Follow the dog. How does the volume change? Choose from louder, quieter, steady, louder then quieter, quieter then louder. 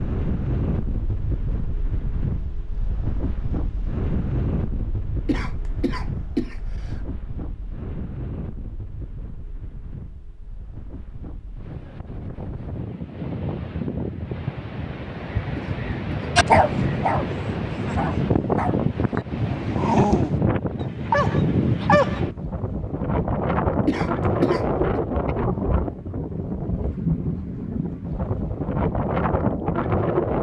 quieter then louder.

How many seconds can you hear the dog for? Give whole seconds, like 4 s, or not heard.
6 s.